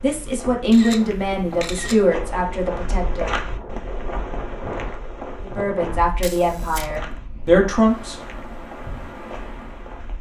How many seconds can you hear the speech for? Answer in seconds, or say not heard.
6 s.